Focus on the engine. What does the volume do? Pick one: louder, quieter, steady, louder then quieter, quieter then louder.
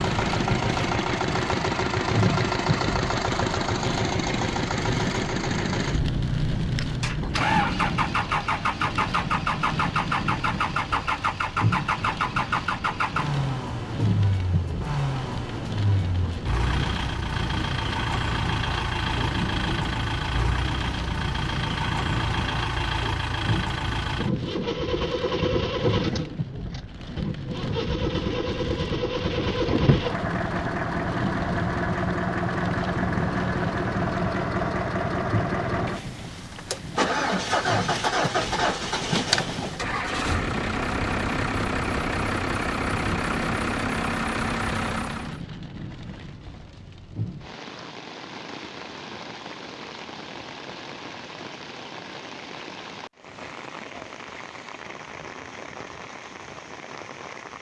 steady.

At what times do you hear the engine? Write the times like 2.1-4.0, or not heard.
0.0-45.4.